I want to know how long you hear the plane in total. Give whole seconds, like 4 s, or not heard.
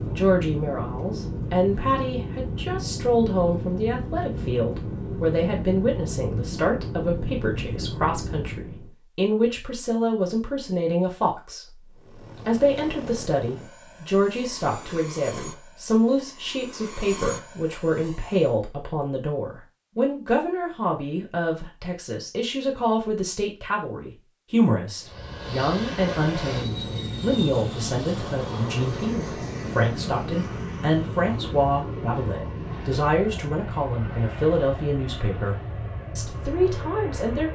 28 s.